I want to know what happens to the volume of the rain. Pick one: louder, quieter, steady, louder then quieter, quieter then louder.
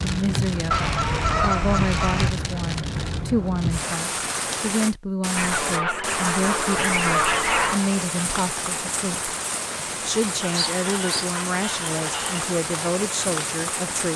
steady.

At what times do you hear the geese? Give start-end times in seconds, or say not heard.
0.7-2.4, 5.3-7.8, 10.4-12.4.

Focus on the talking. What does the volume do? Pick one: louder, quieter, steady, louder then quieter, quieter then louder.
steady.